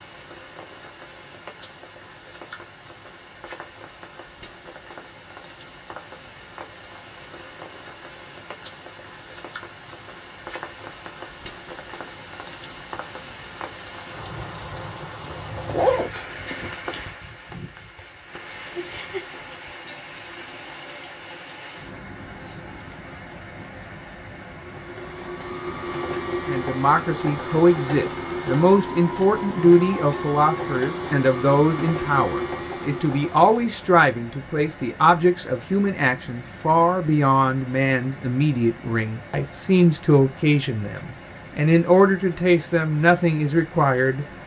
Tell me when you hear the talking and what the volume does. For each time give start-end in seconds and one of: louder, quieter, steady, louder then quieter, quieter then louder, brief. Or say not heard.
26.4-44.2 steady.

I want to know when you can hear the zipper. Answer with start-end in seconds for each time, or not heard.
15.2-16.7.